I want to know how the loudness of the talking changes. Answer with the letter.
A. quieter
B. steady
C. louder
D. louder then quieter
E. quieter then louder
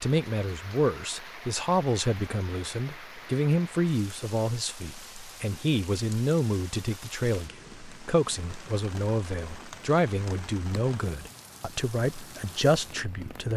B.